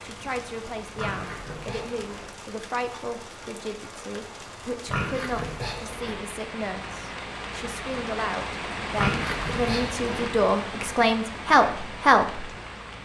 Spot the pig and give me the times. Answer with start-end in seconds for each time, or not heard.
0.9-2.3, 4.8-6.2, 8.9-10.2.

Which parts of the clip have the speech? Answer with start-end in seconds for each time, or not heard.
0.0-12.5.